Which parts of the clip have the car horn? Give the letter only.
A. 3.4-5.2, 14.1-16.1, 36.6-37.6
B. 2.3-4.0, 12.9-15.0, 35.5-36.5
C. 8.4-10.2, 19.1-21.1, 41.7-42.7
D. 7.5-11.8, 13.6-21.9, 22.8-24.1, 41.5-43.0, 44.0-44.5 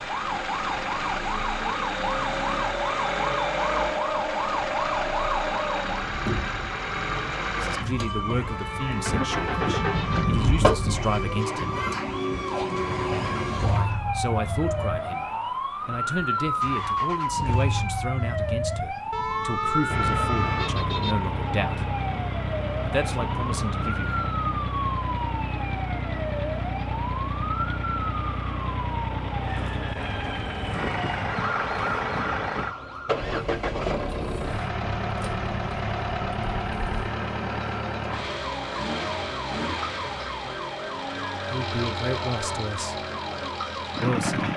C.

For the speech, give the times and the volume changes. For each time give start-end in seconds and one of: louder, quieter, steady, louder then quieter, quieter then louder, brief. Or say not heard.
7.5-11.8 quieter then louder
13.6-21.9 steady
22.8-24.1 brief
41.5-43.0 brief
44.0-44.5 brief.